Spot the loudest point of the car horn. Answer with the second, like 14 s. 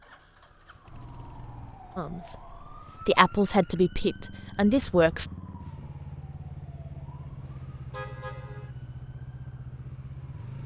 8 s.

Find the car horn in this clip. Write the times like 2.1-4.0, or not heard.
0.9-1.8, 7.9-8.7.